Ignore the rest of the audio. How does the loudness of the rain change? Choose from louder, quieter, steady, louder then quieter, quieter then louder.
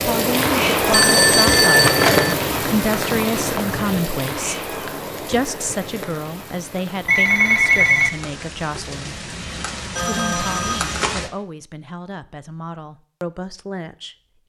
quieter then louder.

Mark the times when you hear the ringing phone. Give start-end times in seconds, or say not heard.
0.9-2.4, 7.0-8.1, 9.9-11.0.